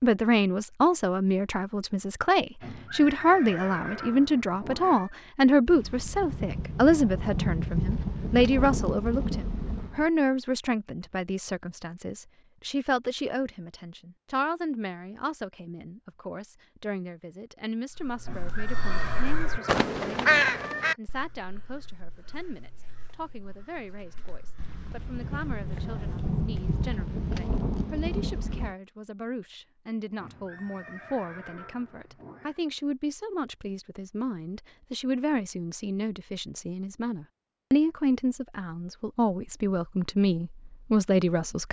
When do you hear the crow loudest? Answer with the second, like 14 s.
20 s.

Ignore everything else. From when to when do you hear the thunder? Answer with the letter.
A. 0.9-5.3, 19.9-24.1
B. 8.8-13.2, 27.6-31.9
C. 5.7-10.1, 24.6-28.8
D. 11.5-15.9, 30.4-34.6
C.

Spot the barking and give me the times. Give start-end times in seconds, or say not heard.
not heard.